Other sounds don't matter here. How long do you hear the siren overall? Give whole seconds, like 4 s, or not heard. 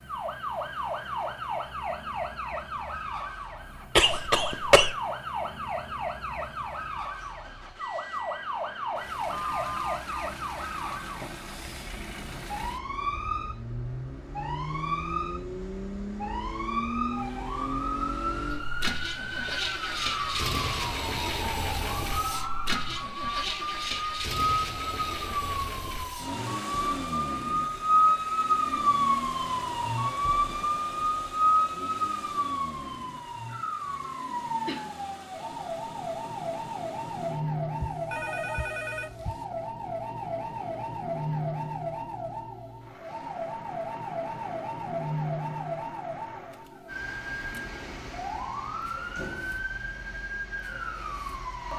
52 s.